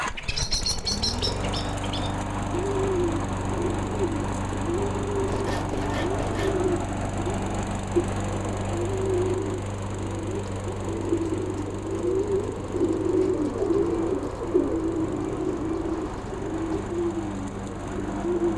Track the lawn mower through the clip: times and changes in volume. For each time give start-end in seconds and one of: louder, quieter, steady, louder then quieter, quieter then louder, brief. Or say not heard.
0.0-18.5 quieter.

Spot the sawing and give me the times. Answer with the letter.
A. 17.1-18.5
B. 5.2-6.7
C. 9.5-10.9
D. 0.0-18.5
B.